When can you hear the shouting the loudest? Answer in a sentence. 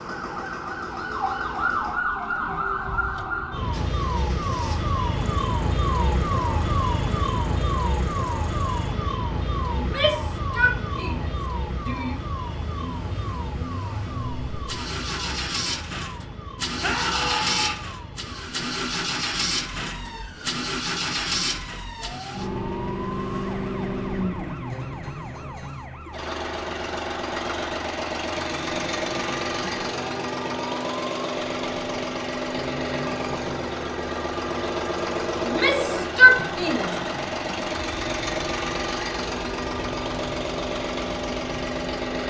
The volume of the shouting peaks at 36 seconds.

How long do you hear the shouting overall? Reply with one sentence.
The shouting can be heard for 5 seconds in total.